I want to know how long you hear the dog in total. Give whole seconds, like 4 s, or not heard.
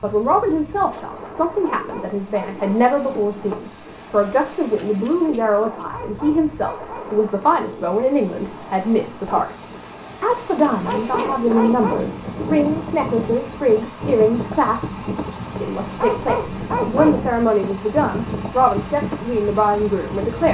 5 s.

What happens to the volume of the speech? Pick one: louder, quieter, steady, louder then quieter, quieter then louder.
steady.